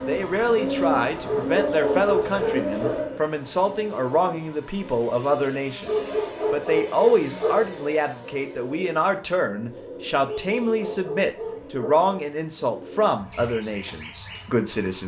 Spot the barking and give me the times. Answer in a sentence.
The barking can be heard from 1.2 to 3.0 s, from 5.8 to 7.7 s and from 10.2 to 12.0 s.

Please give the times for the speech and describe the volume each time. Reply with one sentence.
You can hear the speech from 0.1 to 15.0 s, at a steady volume.